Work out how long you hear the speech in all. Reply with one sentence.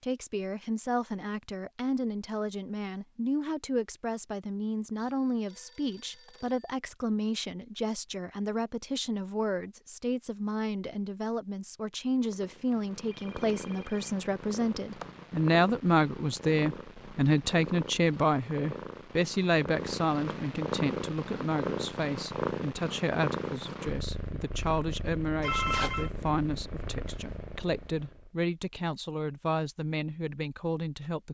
You can hear the speech for 31 seconds altogether.